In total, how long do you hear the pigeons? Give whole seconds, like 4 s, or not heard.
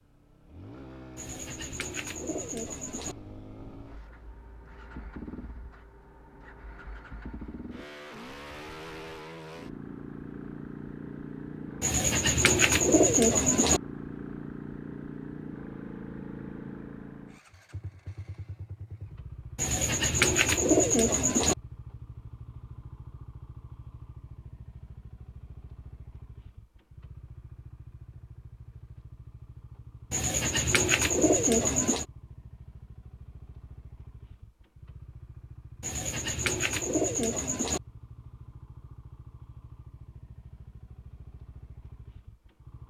10 s.